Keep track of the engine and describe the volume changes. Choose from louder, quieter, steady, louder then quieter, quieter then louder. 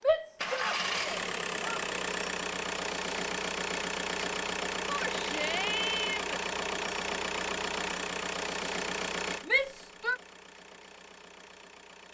quieter.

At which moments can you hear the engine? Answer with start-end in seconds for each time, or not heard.
0.3-12.0.